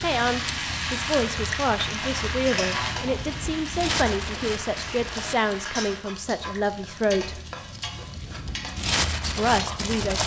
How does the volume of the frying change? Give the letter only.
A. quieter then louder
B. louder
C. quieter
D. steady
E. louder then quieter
C.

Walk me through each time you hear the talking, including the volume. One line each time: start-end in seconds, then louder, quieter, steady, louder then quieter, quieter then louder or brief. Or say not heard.
0.0-7.4 steady
9.2-10.2 brief.